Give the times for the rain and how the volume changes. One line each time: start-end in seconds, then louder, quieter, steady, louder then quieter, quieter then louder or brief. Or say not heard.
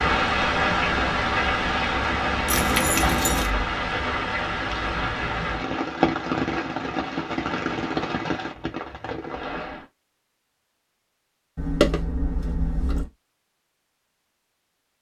0.0-9.8 quieter.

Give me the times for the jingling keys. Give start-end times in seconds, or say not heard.
2.5-3.5, 11.6-13.1.